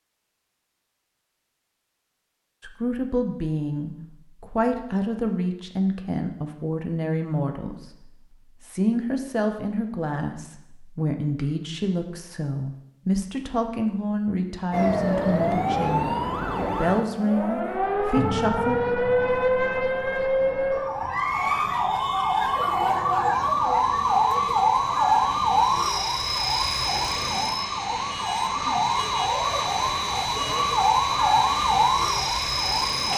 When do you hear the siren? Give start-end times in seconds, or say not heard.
14.7-33.1.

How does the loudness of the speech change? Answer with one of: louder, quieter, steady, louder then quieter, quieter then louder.
steady.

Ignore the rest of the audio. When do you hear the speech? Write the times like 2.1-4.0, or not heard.
2.6-18.8.